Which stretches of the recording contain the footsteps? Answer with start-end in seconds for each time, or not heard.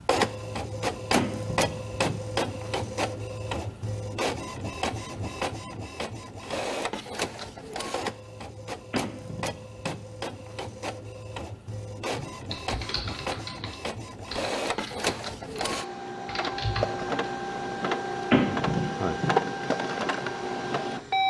not heard.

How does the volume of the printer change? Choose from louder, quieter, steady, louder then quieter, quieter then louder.
quieter then louder.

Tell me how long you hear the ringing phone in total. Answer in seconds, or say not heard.
3 s.